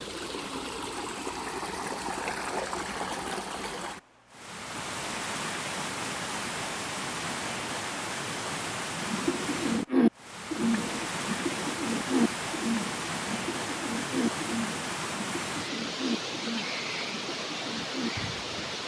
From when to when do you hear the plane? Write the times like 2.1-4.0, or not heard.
not heard.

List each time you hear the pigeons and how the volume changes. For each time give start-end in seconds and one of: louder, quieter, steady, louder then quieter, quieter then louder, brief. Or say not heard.
8.9-18.6 quieter.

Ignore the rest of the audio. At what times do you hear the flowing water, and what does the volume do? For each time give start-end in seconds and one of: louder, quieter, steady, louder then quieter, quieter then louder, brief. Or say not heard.
0.0-18.8 steady.